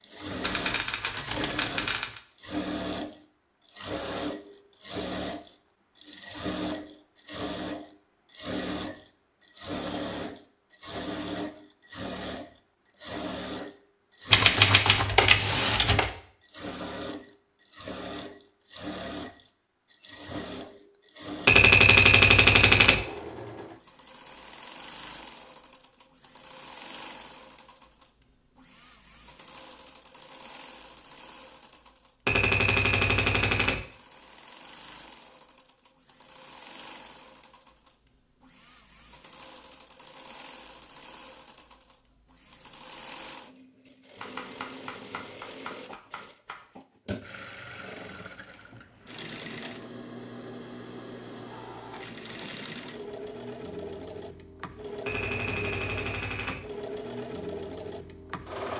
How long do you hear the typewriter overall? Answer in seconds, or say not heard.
11 s.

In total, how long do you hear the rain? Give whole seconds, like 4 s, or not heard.
not heard.